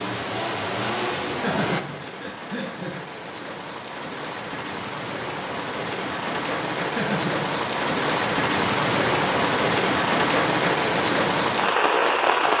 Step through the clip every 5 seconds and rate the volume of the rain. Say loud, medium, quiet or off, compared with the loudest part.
quiet, loud, loud.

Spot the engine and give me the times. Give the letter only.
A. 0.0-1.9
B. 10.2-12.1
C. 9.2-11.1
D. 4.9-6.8
A.